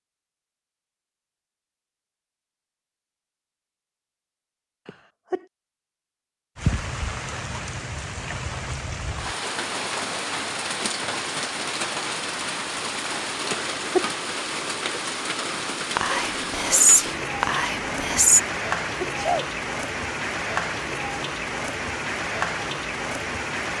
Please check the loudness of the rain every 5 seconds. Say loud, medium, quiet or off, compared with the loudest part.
off, loud, loud, loud, loud.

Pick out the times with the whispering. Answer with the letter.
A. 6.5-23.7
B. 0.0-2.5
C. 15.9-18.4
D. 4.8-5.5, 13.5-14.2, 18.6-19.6
C.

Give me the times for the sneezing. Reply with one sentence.
The sneezing can be heard from 4.8 to 5.5 s, from 13.5 to 14.2 s and from 18.6 to 19.6 s.